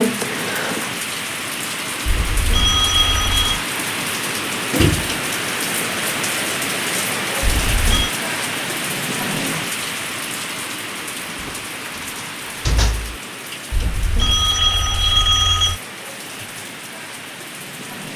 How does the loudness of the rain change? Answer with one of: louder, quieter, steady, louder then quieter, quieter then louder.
quieter.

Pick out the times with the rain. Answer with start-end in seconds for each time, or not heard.
0.0-18.1.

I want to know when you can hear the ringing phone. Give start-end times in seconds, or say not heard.
2.0-3.6, 7.4-8.1, 13.7-15.8.